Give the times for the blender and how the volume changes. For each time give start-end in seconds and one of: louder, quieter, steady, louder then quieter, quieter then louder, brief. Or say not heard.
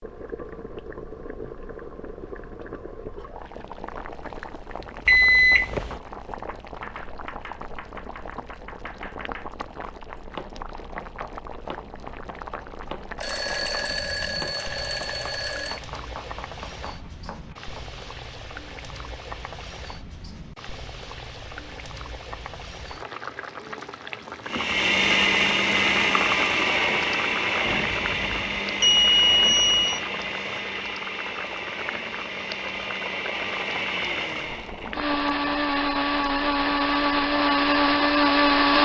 24.4-38.8 quieter then louder.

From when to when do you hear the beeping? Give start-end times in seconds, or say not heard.
5.0-6.0, 13.2-15.8, 27.6-30.0.